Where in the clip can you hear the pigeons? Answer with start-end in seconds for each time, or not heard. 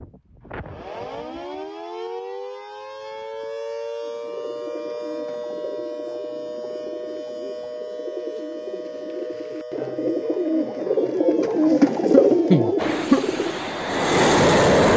4.0-13.7.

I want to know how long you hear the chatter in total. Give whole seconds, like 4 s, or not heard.
not heard.